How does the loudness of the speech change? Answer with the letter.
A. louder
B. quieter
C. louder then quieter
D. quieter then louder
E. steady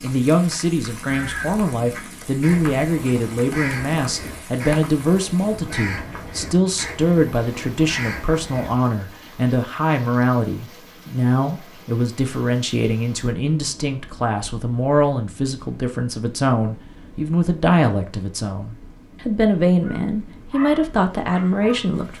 E.